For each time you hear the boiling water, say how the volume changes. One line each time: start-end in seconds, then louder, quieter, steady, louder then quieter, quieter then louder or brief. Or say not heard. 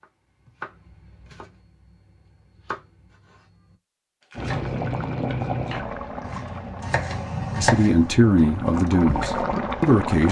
4.3-10.2 quieter then louder.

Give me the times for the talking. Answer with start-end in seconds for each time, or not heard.
7.5-10.2.